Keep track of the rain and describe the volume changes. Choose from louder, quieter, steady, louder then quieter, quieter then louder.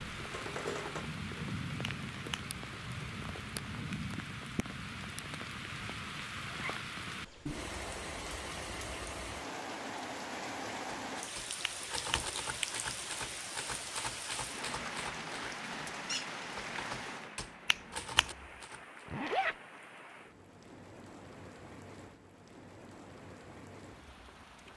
quieter.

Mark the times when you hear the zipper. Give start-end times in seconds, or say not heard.
6.5-6.9, 19.1-19.6.